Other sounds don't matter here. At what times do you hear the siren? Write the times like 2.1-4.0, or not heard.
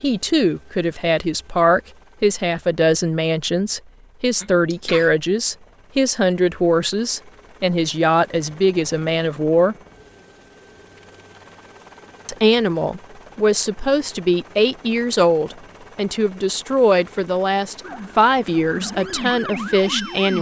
17.8-20.3.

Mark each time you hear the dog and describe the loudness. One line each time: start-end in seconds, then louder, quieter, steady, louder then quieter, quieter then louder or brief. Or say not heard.
not heard.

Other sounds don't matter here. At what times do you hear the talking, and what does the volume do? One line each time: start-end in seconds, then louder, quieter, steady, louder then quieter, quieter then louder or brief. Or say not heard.
0.0-9.8 steady
12.2-20.3 steady.